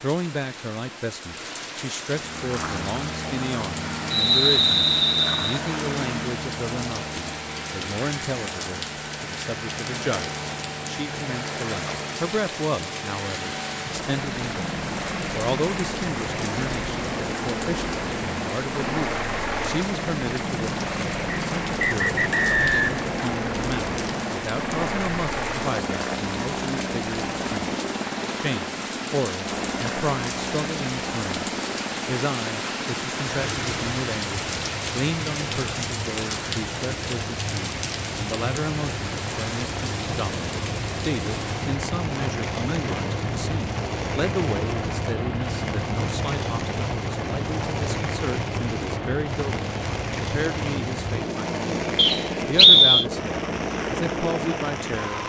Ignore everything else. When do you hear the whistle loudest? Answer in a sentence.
The volume of the whistle peaks at 53 seconds.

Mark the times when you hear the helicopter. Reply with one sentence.
You can hear the helicopter from 2.1 to 55.2 s.